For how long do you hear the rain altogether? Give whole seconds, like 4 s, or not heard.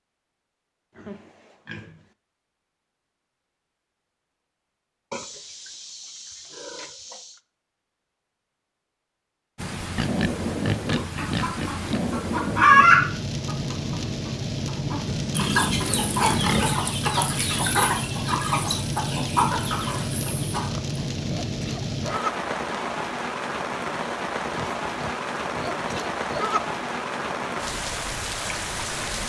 20 s.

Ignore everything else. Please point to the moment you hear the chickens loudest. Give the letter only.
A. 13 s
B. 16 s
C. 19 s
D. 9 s
A.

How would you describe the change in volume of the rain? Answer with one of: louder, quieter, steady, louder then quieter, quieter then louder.
steady.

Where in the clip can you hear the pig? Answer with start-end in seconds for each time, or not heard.
0.9-2.1, 5.1-7.4, 9.9-12.0, 15.1-16.9, 20.2-22.5, 24.5-26.8.